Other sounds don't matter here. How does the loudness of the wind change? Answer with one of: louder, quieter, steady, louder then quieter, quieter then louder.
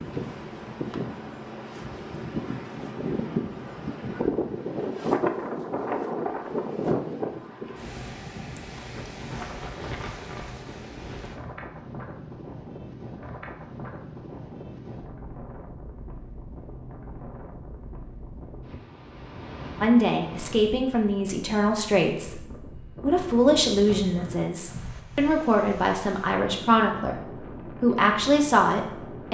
quieter.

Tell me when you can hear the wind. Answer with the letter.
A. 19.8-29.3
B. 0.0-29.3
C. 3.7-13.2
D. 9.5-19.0
B.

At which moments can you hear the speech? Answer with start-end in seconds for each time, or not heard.
19.8-29.3.